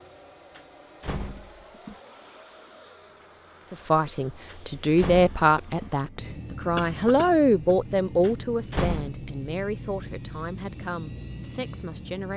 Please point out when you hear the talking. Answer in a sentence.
You can hear the talking from 3.7 to 12.3 s.